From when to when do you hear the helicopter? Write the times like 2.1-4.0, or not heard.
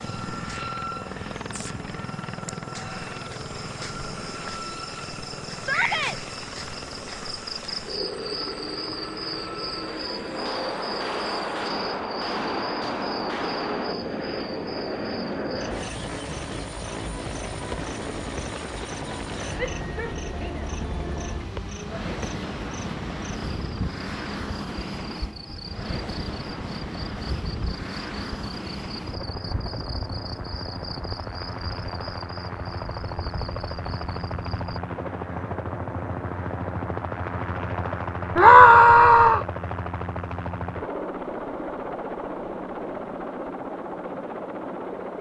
0.0-45.1.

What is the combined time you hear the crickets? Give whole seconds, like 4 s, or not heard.
35 s.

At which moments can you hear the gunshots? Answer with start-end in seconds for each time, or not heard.
10.3-13.9.